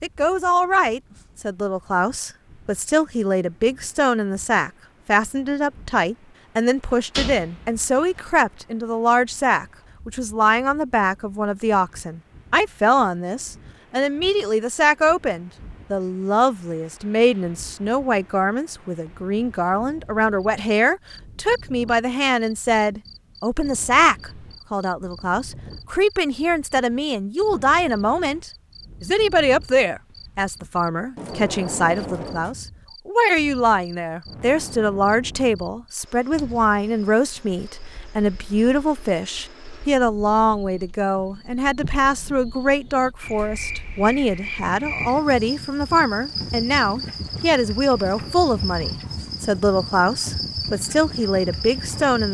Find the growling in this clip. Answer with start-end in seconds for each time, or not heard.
not heard.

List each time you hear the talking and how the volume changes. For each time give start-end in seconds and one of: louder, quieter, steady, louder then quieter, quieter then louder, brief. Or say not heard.
0.0-52.3 steady.